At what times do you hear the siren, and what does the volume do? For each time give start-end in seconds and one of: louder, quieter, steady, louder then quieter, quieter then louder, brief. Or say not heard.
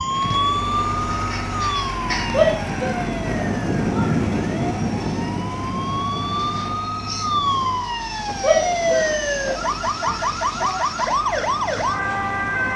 0.0-12.7 quieter then louder.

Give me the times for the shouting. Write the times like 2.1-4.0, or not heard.
2.3-4.2, 8.4-10.8.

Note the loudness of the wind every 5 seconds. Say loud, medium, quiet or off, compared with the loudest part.
loud, medium, quiet.